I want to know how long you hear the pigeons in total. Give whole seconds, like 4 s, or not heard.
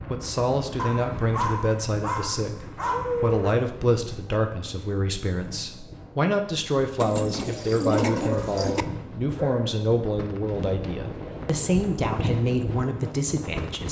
2 s.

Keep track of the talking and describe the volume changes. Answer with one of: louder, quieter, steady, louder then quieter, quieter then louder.
steady.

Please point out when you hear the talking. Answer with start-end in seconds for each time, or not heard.
0.1-13.8.